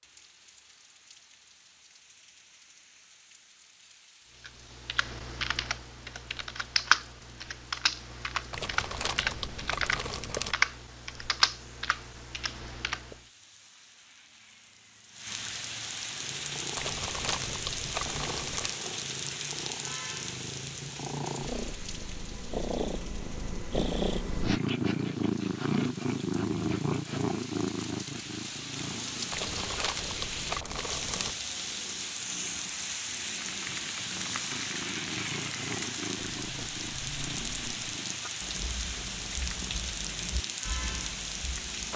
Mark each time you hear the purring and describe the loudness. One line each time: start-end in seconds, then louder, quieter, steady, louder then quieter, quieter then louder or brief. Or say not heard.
16.1-41.9 louder then quieter.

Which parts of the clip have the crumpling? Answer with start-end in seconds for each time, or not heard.
8.5-10.6, 16.8-18.8, 29.3-31.4.